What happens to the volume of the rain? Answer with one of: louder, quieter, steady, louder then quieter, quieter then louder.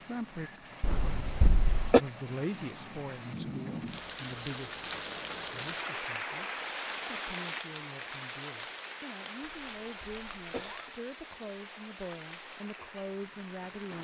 louder then quieter.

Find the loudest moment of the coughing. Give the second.
2 s.